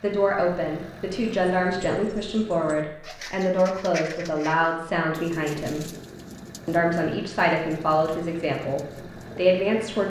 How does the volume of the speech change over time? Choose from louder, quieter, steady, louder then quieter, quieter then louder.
steady.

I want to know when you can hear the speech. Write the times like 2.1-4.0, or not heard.
0.0-5.8, 6.7-10.0.